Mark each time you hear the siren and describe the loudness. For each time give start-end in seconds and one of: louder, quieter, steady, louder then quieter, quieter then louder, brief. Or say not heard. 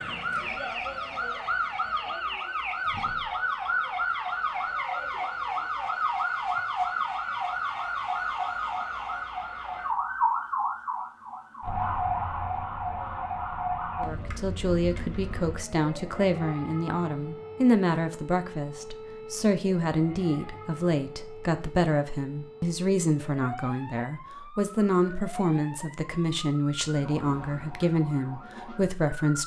0.0-29.4 quieter.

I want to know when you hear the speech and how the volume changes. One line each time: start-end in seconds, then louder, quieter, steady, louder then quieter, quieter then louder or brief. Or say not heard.
14.0-29.4 steady.